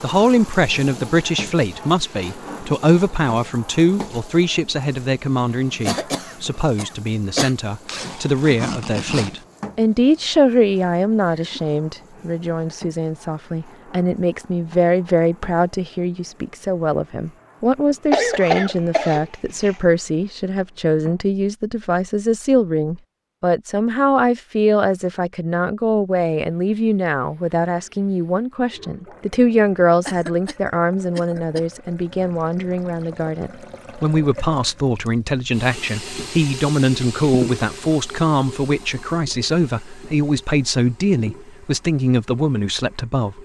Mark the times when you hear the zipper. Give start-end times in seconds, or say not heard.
7.8-9.4.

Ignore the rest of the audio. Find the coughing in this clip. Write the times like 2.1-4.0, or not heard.
5.8-7.5, 18.1-19.8, 30.1-31.6.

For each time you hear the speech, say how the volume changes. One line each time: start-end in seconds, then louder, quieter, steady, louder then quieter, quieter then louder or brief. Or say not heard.
0.0-43.3 steady.